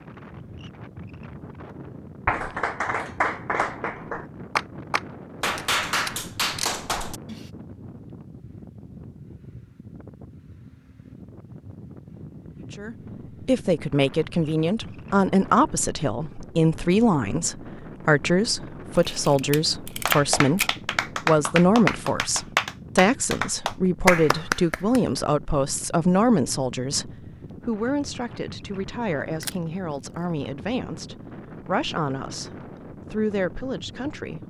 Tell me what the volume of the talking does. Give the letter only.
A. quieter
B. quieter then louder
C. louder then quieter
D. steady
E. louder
A.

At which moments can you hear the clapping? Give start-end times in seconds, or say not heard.
2.2-7.5, 20.1-25.2.